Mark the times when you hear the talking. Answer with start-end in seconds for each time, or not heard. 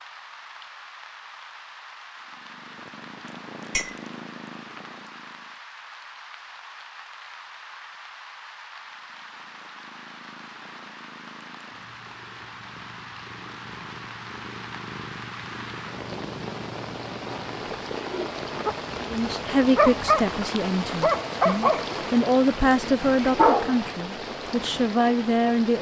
19.1-25.7.